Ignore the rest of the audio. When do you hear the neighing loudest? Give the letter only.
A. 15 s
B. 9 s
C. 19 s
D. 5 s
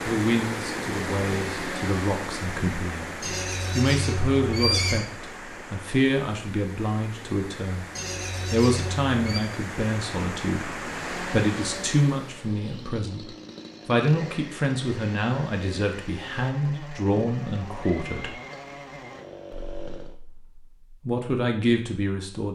D.